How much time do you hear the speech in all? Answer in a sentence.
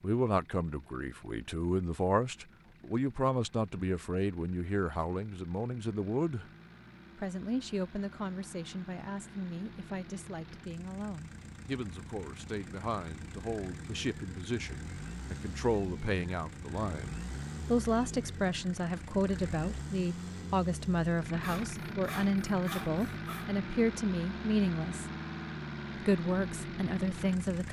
The speech can be heard for 26 seconds in total.